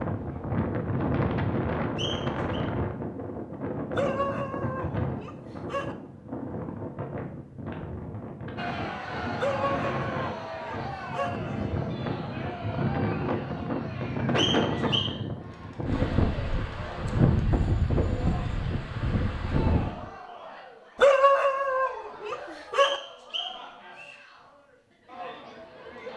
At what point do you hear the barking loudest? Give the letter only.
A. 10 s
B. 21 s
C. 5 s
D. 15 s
B.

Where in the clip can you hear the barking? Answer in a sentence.
The barking can be heard from 4.0 to 6.0 s, from 9.3 to 11.4 s and from 20.9 to 23.0 s.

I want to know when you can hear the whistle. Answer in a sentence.
The whistle can be heard from 1.9 to 2.6 s, from 14.3 to 15.1 s and from 22.8 to 24.2 s.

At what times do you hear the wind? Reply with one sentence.
You can hear the wind from 0.0 to 20.1 s.